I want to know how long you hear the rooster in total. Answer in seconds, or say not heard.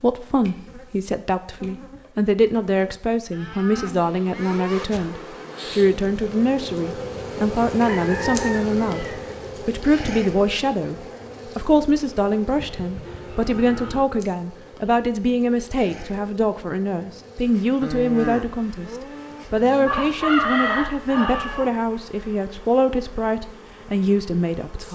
3 s.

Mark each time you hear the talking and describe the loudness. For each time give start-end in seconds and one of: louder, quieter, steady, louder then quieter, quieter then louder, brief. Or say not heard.
0.0-24.9 steady.